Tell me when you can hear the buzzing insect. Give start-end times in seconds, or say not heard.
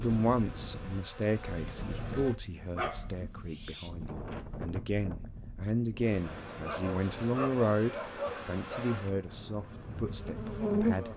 0.0-2.4, 6.0-11.1.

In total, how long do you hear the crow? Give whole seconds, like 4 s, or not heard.
not heard.